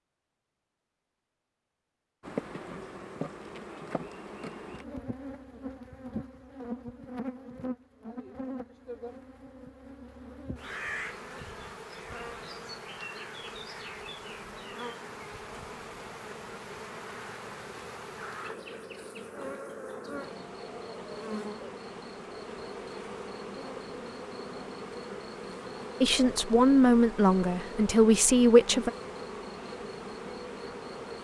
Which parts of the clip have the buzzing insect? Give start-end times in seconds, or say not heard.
2.2-31.1.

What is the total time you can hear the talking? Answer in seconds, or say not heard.
3 s.